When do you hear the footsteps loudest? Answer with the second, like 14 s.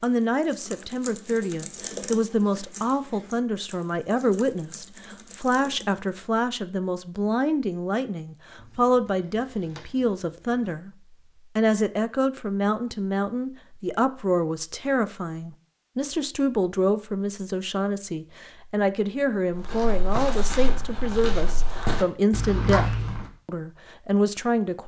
23 s.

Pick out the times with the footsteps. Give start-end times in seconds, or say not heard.
19.5-23.3.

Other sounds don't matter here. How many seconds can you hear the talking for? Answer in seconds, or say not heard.
24 s.